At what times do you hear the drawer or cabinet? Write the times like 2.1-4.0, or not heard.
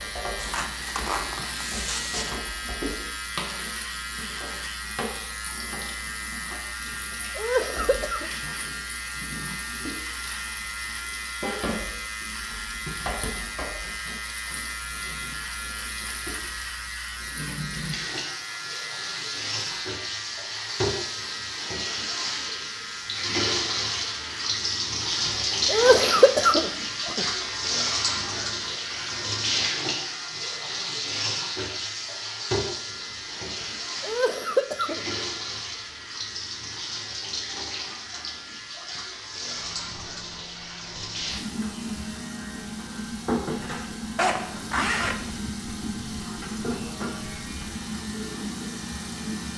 not heard.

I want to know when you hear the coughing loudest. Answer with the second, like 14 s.
26 s.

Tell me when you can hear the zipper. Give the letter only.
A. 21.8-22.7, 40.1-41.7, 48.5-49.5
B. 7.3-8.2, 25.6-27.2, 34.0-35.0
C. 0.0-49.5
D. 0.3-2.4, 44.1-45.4
D.